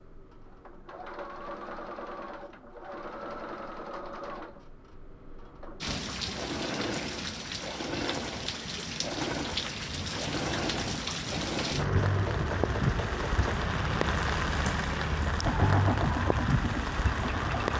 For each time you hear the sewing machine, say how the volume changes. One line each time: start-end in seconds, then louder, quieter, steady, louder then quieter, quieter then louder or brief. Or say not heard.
0.0-17.7 louder.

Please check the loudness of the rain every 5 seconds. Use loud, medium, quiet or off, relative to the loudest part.
off, medium, loud, loud.